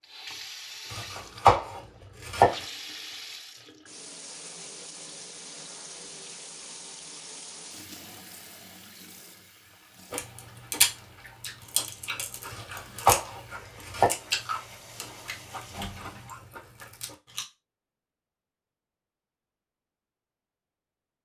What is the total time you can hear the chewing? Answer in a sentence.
You can hear the chewing for 7 seconds altogether.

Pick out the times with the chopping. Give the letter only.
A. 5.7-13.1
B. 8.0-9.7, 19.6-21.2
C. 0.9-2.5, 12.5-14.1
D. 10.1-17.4
C.